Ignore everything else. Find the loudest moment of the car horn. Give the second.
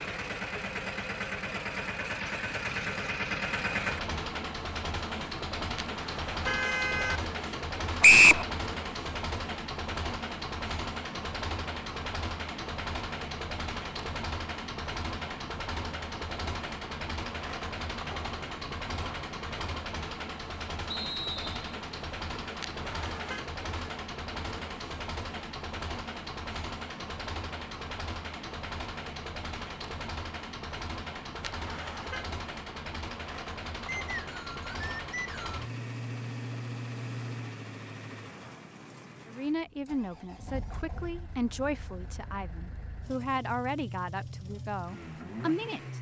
7 s.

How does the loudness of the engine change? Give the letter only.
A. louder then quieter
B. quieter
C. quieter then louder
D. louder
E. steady
B.